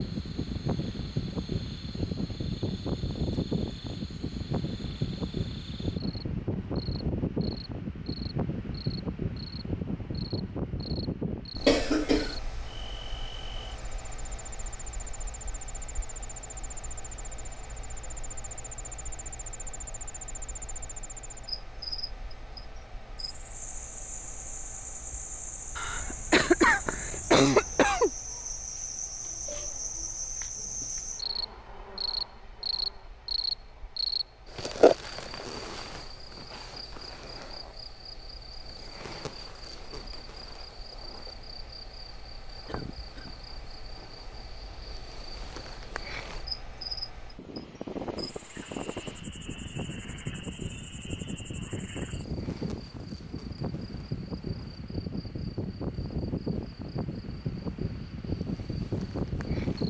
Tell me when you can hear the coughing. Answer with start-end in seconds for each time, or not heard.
11.7-12.3, 25.8-28.1, 42.6-43.3.